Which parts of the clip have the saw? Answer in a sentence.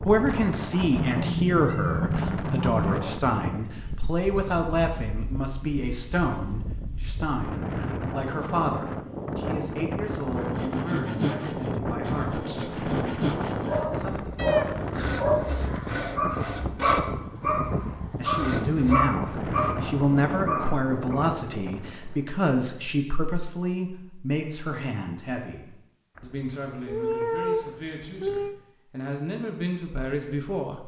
The saw can be heard from 10.3 to 19.4 s.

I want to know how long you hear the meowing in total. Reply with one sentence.
You can hear the meowing for 6 seconds altogether.